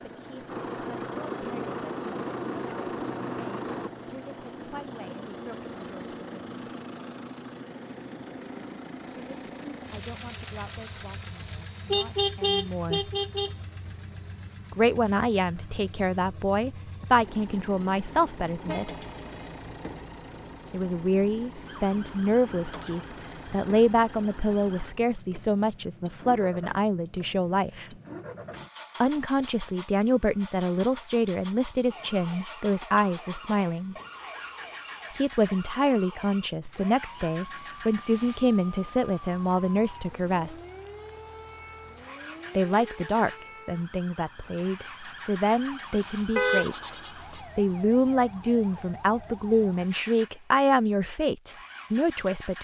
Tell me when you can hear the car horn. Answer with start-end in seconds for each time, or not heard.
11.4-13.6, 18.6-19.6, 46.4-47.4.